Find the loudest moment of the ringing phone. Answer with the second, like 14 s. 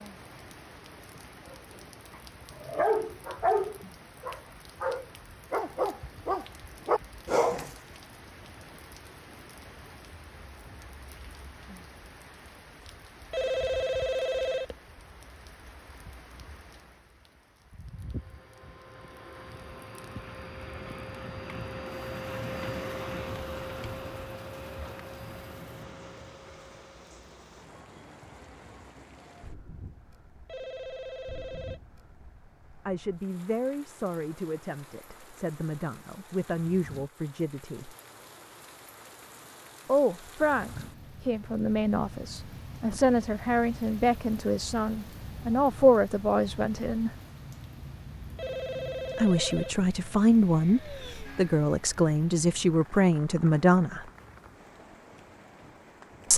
14 s.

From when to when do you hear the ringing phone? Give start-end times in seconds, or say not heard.
13.3-14.8, 30.4-31.8, 48.4-49.8.